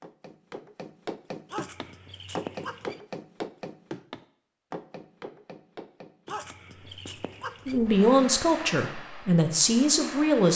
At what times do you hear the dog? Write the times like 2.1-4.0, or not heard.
1.5-3.0, 6.2-7.8.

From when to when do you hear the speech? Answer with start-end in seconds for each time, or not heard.
7.7-10.5.